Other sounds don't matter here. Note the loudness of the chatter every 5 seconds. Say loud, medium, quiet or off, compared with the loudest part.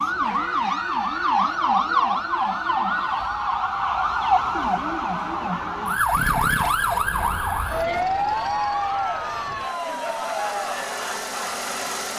medium, loud, loud.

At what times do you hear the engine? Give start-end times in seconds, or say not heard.
6.1-12.1.